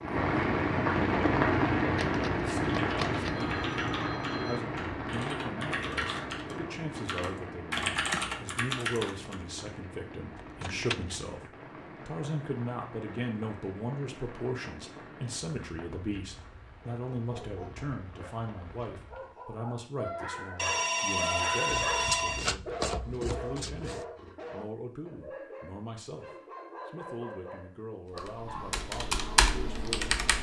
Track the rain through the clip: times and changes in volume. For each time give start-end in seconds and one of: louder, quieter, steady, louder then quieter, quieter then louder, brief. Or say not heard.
0.0-19.4 quieter.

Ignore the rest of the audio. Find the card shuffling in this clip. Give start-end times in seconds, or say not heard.
1.9-3.5, 10.4-11.2, 21.6-24.1.